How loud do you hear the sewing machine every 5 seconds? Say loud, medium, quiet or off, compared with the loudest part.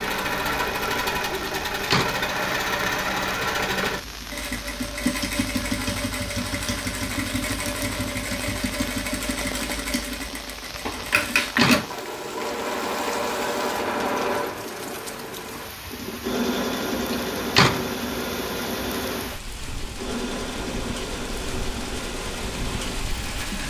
loud, loud, loud, loud, medium.